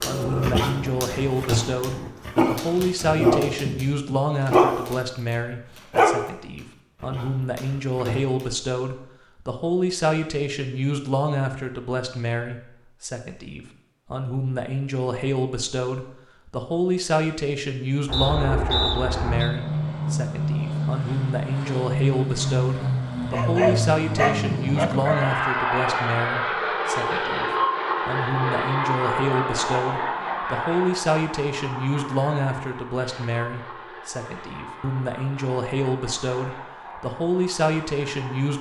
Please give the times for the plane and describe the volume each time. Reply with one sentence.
The plane can be heard briefly from 0.0 to 2.1 s; and from 18.1 to 38.5 s, getting quieter.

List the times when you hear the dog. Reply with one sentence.
The dog can be heard from 0.0 to 6.3 s, from 7.0 to 8.5 s and from 23.3 to 25.4 s.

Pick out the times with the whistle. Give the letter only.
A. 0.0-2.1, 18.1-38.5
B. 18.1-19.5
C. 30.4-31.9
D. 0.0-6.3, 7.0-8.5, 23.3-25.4
B.